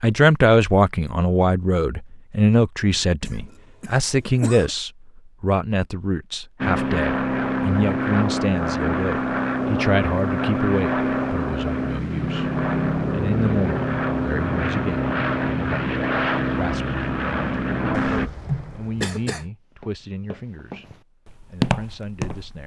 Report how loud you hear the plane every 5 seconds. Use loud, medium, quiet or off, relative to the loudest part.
off, loud, loud, loud, off.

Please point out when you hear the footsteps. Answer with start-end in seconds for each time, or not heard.
19.7-22.6.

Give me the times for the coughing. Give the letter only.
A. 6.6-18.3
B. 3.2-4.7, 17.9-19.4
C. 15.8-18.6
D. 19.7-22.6
B.